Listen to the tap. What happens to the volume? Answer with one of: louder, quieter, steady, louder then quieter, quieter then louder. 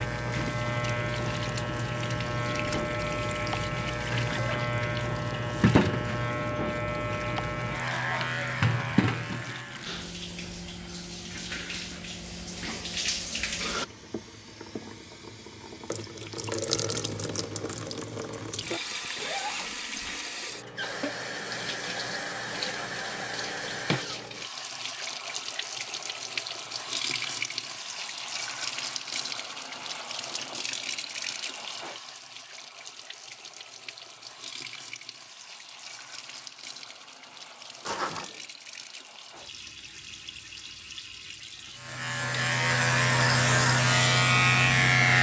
quieter.